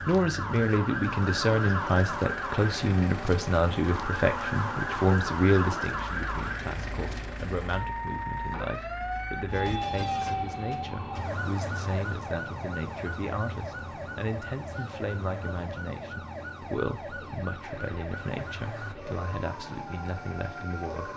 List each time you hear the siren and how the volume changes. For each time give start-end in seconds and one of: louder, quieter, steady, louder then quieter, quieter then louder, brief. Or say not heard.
0.0-21.1 quieter.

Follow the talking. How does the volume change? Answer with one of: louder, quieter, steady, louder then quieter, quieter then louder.
quieter.